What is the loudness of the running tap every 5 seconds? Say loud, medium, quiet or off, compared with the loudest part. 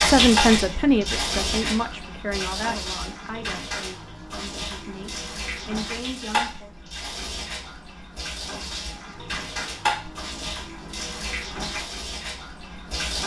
loud, medium, medium.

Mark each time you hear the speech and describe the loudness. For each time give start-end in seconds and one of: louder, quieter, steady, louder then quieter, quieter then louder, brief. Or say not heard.
0.0-6.7 quieter then louder.